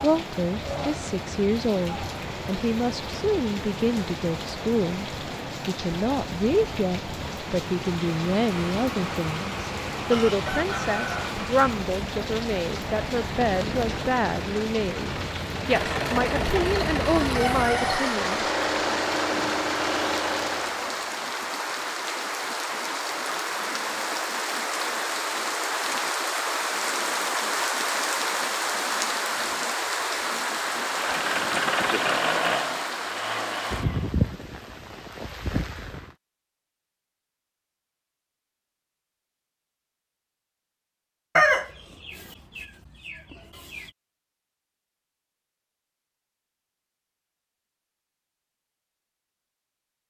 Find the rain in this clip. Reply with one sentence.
The rain can be heard from 0.0 to 36.1 s.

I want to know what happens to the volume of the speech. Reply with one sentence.
The loudness of the speech stays about the same.